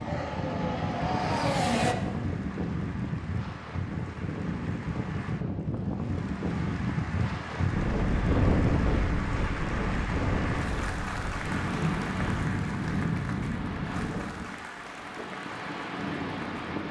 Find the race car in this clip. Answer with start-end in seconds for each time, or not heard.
0.0-1.9.